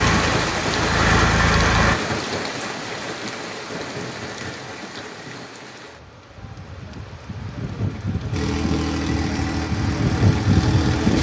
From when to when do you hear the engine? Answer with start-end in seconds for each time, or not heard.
0.0-1.9, 8.3-11.1.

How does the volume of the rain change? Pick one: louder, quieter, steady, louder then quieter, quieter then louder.
quieter then louder.